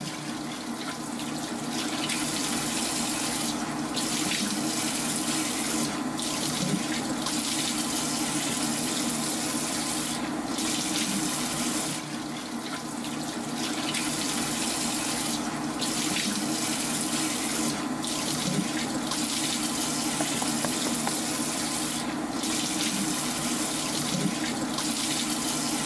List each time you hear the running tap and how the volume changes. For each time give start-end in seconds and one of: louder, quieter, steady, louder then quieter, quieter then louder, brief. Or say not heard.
0.0-25.8 steady.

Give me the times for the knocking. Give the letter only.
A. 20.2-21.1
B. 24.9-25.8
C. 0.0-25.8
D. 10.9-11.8
A.